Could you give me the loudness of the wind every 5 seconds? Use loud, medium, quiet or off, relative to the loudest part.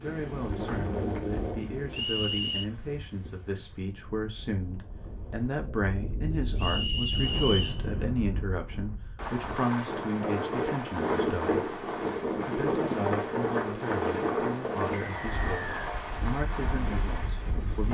medium, medium, loud, medium.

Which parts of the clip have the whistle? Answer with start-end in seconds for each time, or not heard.
1.9-2.7, 6.5-7.8, 14.9-15.8.